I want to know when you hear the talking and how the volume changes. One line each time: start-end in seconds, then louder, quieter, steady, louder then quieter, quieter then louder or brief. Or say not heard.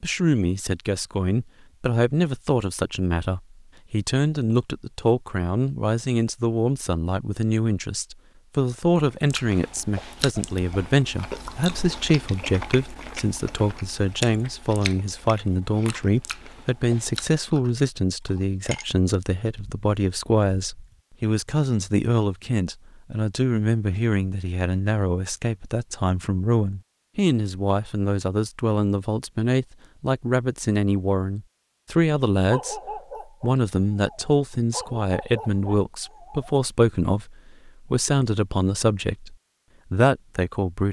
0.0-40.8 steady.